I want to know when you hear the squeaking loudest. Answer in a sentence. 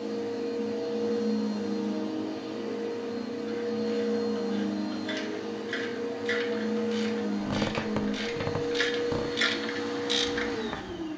The loudest moment of the squeaking is at 8 seconds.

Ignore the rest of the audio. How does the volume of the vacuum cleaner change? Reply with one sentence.
The volume of the vacuum cleaner stays about the same.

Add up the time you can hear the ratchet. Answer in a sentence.
You can hear the ratchet for 7 seconds altogether.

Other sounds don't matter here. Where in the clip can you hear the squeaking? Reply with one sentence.
The squeaking can be heard from 7.4 to 9.3 s.